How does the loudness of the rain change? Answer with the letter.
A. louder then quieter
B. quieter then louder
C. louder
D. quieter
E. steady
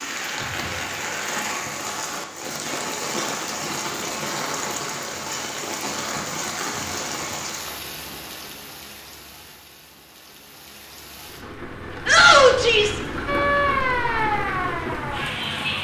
B.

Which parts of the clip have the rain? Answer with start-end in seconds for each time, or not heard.
0.0-15.7.